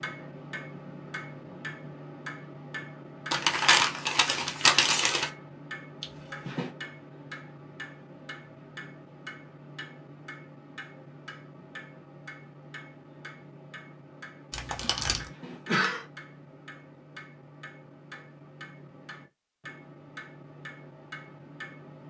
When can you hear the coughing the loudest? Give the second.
16 s.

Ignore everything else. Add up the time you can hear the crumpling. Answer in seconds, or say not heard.
3 s.